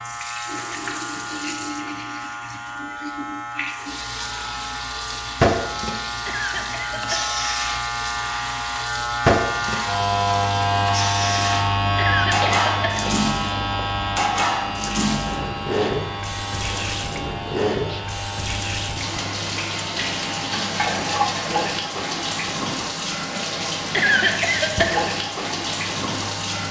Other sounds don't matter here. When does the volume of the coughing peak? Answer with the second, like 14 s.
24 s.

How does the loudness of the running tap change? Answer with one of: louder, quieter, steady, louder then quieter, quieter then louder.
steady.